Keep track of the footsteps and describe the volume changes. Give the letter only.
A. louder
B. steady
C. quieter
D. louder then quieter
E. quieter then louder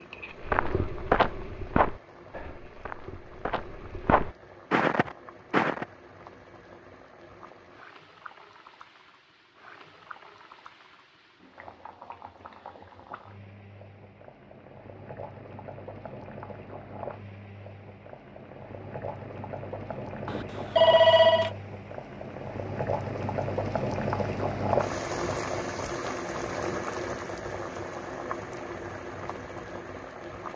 E.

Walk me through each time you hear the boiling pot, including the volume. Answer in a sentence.
You can hear the boiling pot from 0.0 to 30.5 s, getting louder.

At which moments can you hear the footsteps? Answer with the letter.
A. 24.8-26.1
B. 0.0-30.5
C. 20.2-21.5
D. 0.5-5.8
D.